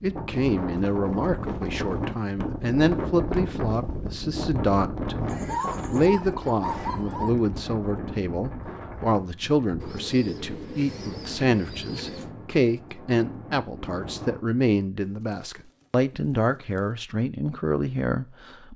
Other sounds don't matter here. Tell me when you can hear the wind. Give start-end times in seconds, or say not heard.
0.0-14.4.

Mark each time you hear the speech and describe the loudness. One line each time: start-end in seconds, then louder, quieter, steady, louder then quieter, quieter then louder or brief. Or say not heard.
0.0-18.7 steady.